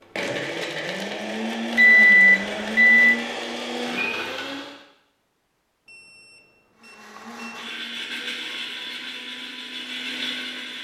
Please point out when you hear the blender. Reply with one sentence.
The blender can be heard from 0.0 to 4.8 s and from 6.8 to 10.7 s.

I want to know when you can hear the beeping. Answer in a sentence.
You can hear the beeping from 1.8 to 3.1 s and from 5.8 to 7.7 s.